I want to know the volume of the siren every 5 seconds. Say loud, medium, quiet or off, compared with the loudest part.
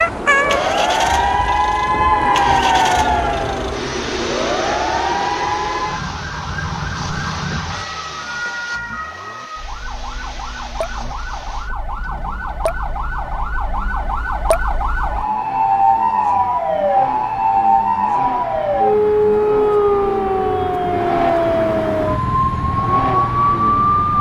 loud, medium, medium, loud, loud.